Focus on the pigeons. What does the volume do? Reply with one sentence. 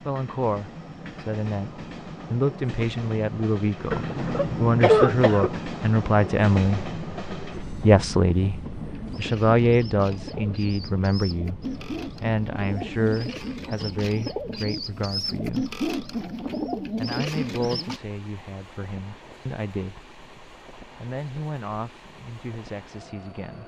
The loudness of the pigeons goes up.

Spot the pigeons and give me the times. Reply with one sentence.
You can hear the pigeons from 8.8 to 18.0 s.